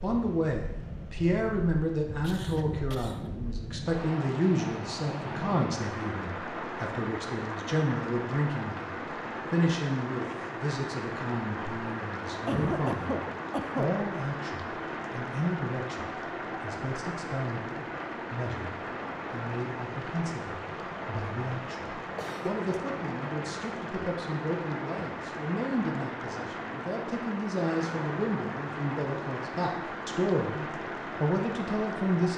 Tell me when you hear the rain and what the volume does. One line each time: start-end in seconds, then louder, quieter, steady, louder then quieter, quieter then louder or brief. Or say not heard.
0.0-32.3 steady.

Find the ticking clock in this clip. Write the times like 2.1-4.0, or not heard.
not heard.